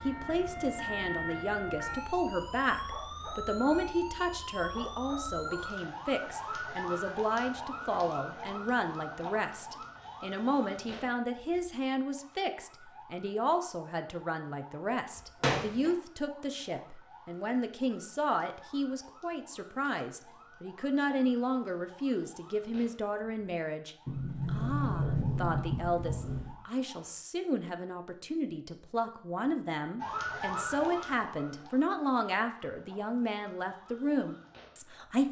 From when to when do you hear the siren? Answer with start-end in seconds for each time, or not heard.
0.0-27.1, 29.9-35.0.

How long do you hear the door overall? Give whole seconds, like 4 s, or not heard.
3 s.